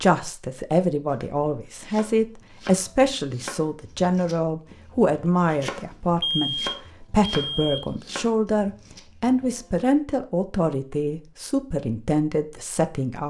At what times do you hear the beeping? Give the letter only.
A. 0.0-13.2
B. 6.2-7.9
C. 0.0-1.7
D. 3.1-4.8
B.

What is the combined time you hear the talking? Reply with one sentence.
The talking can be heard for 13 seconds in total.